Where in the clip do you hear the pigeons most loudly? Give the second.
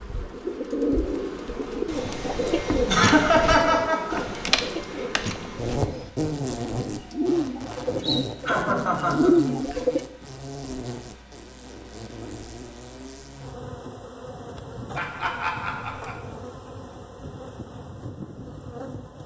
9 s.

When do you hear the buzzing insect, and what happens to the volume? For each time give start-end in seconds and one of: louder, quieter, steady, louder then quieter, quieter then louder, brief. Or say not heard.
0.0-19.2 louder then quieter.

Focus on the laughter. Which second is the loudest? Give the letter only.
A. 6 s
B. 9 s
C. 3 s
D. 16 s
C.